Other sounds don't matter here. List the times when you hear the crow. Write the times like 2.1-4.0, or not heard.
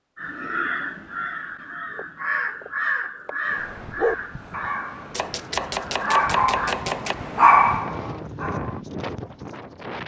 0.1-6.8.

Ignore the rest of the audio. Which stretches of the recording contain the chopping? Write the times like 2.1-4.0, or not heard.
1.9-3.4, 5.1-7.2.